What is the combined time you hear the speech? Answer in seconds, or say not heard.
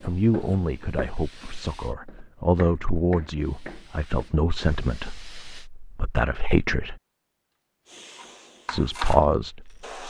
8 s.